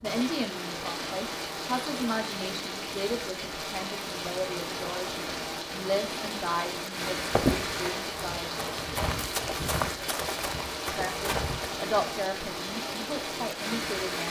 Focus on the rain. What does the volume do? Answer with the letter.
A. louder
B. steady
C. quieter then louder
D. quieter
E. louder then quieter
B.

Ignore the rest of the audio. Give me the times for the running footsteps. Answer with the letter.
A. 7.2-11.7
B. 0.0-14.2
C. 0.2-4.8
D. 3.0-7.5
A.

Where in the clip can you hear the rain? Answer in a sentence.
You can hear the rain from 0.0 to 14.2 s.